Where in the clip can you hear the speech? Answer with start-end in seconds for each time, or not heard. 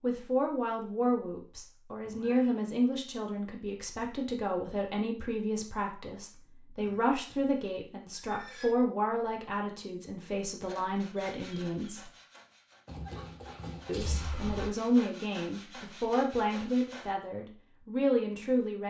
0.0-12.1, 13.8-18.8.